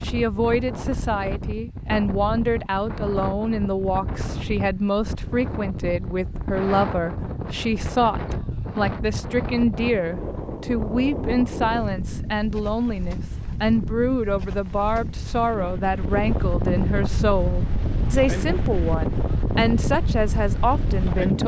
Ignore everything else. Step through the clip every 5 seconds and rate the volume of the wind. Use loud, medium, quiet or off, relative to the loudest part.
medium, medium, medium, loud, loud.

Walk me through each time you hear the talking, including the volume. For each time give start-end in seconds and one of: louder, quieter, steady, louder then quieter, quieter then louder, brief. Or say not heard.
0.0-21.4 steady.